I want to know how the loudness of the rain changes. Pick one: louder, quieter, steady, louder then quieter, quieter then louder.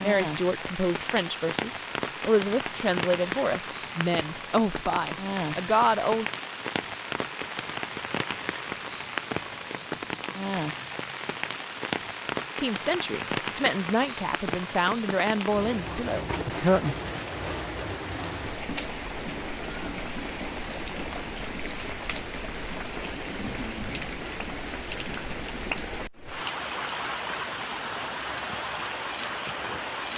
steady.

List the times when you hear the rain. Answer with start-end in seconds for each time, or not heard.
0.0-30.1.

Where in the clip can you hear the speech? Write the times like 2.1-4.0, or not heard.
0.0-6.2, 12.6-16.9.